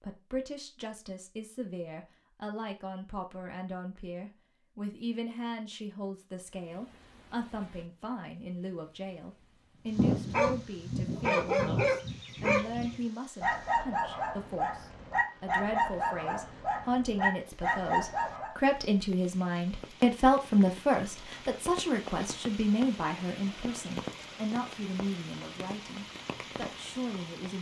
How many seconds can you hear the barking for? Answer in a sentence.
The barking can be heard for 9 seconds in total.